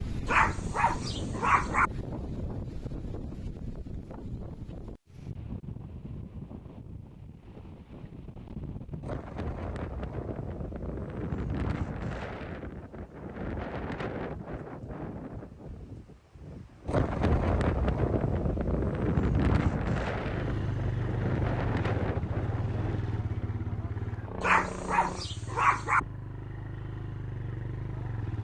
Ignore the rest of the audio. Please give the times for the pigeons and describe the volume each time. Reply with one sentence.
The pigeons can't be heard in this clip.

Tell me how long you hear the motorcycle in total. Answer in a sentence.
The motorcycle can be heard for 8 seconds in total.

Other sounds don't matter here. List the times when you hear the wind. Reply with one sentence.
The wind can be heard from 0.0 to 23.0 s.